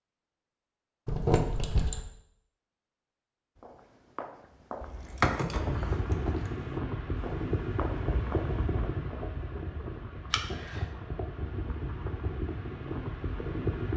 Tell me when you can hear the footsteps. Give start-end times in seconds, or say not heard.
3.5-8.9.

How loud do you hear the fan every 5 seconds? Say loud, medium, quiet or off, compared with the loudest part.
off, loud, loud.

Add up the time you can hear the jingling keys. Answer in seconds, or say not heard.
3 s.